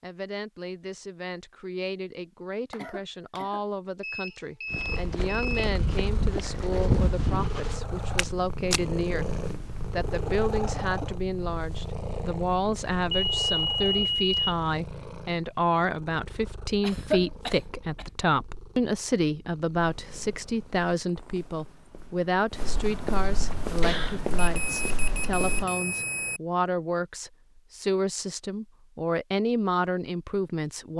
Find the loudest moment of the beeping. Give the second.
14 s.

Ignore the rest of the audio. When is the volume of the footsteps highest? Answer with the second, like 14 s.
7 s.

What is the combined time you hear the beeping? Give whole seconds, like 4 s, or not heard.
5 s.